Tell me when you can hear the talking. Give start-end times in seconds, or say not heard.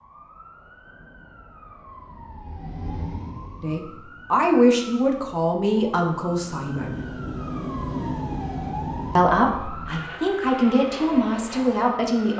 3.6-7.0, 9.2-12.3.